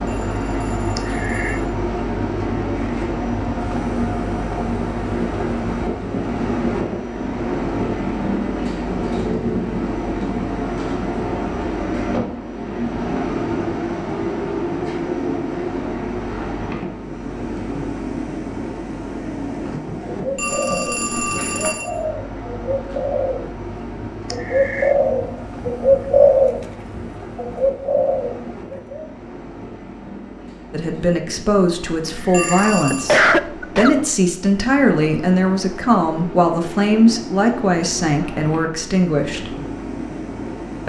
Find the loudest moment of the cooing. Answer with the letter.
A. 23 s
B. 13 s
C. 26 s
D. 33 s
C.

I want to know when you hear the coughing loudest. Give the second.
33 s.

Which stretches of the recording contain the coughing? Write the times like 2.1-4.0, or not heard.
0.9-1.6, 24.3-24.9, 32.0-34.0.